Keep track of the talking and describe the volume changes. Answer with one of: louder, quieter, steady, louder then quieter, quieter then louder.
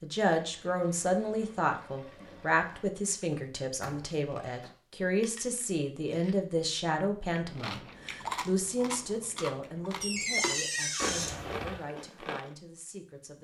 quieter.